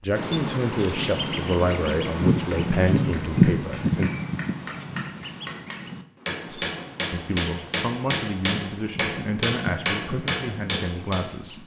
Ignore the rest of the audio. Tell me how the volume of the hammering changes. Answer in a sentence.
The volume of the hammering goes up.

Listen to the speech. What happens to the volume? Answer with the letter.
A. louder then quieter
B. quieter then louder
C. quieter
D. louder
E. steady
C.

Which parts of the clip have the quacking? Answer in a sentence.
The quacking can be heard from 0.1 to 11.6 s.